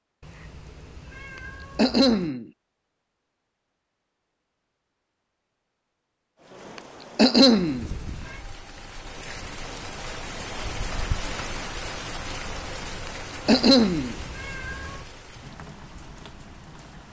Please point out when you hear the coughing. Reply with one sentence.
You can hear the coughing from 1.4 to 2.5 s, from 6.8 to 7.8 s and from 13.1 to 14.2 s.